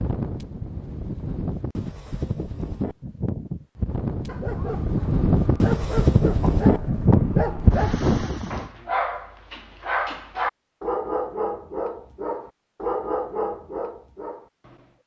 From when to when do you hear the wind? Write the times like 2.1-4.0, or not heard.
0.0-8.7.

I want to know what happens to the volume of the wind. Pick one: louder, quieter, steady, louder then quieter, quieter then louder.
louder.